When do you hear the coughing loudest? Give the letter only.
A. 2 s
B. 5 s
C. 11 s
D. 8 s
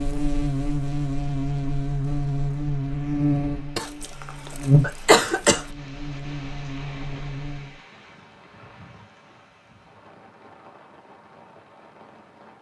B.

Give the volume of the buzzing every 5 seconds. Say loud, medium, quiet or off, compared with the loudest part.
loud, medium, off.